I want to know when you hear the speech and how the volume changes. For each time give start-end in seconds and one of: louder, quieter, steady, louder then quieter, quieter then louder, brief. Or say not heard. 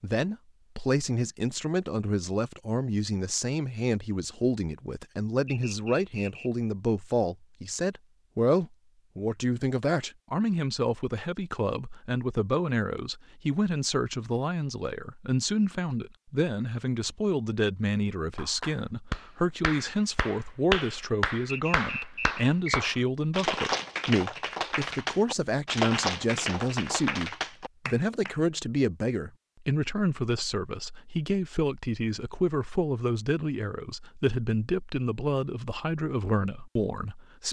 0.0-37.4 steady.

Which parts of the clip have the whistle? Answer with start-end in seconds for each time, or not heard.
5.5-6.5, 21.4-22.9.